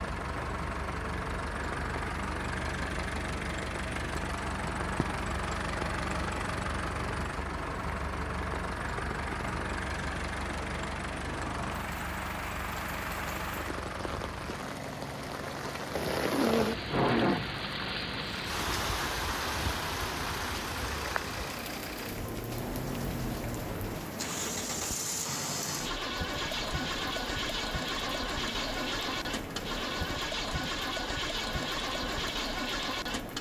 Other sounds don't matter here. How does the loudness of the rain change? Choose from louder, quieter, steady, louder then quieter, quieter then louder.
louder then quieter.